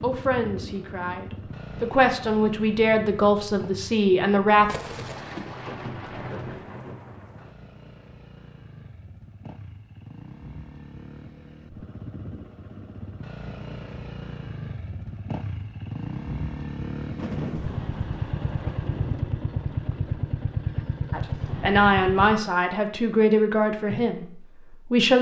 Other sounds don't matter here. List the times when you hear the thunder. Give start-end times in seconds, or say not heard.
4.7-7.5, 17.1-19.2.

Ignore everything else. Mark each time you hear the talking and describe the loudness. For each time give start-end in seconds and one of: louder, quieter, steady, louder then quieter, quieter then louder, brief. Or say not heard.
0.0-4.7 louder
21.1-25.1 quieter.